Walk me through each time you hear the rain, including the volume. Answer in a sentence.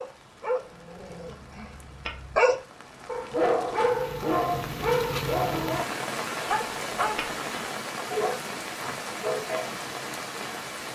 The rain can be heard from 0.0 to 10.9 s, getting louder.